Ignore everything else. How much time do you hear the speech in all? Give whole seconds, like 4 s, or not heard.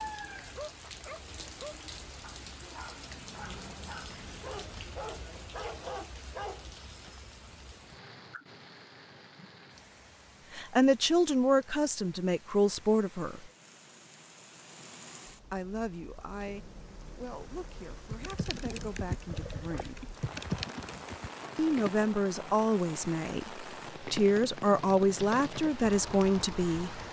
13 s.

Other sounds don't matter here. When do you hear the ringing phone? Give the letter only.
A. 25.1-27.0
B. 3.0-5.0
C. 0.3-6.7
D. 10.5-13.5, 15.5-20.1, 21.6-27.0
B.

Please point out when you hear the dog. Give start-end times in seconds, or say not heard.
0.3-6.7.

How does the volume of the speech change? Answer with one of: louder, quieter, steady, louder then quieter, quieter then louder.
quieter then louder.